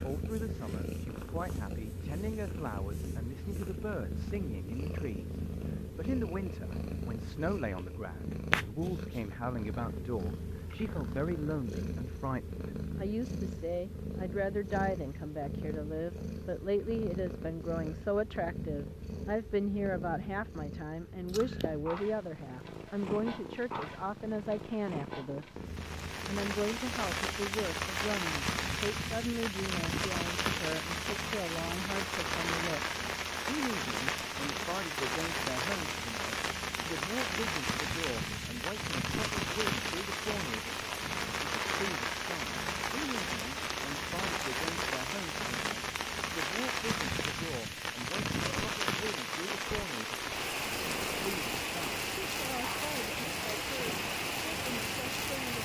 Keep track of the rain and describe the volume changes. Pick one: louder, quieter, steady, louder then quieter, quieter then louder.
steady.